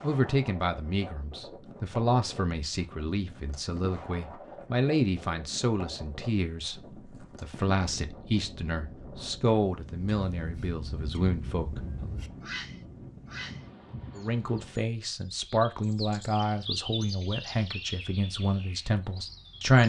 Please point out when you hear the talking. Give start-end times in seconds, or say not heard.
0.0-12.2, 14.2-19.8.